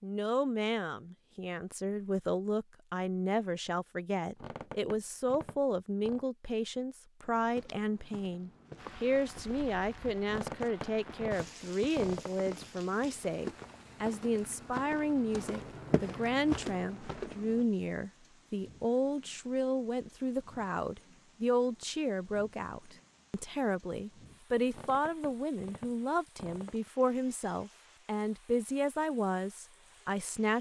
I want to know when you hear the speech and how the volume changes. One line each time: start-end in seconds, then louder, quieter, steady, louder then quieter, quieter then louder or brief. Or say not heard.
0.0-30.5 steady.